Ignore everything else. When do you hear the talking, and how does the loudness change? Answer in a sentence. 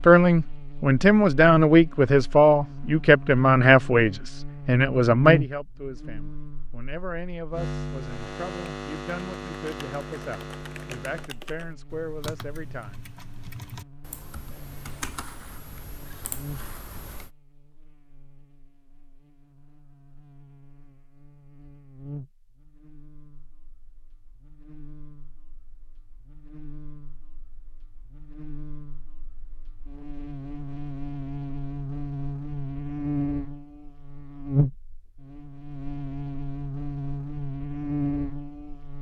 The talking can be heard from 0.1 to 13.1 s, getting quieter.